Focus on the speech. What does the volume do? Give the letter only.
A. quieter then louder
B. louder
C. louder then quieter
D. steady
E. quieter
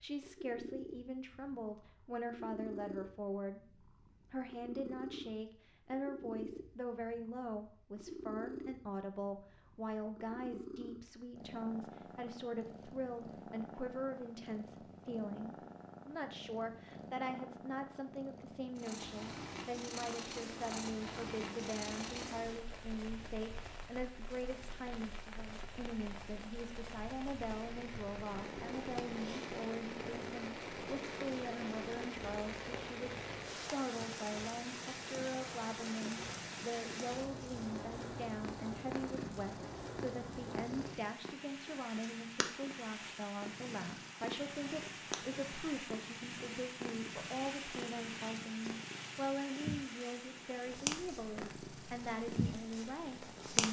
D.